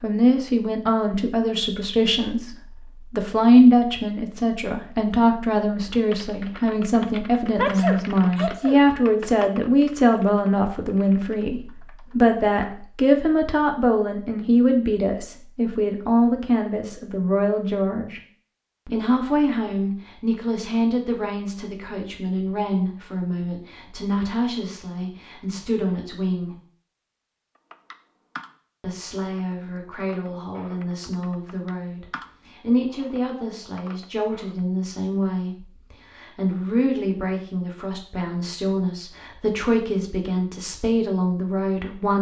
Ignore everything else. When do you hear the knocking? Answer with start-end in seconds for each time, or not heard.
not heard.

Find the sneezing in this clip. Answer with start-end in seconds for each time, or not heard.
7.5-8.8.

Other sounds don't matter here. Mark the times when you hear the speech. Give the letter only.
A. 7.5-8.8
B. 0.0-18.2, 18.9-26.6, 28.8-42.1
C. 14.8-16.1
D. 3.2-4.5
B.